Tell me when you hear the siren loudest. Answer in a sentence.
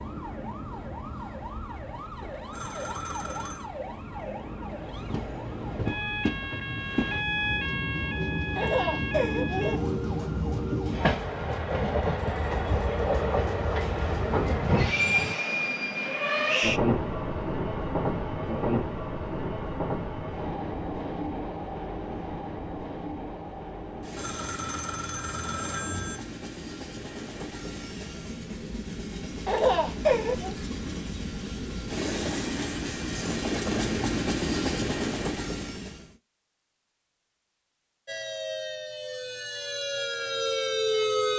The volume of the siren peaks at 41 seconds.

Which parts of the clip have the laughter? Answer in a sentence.
You can hear the laughter from 8.6 to 9.8 s and from 29.4 to 30.6 s.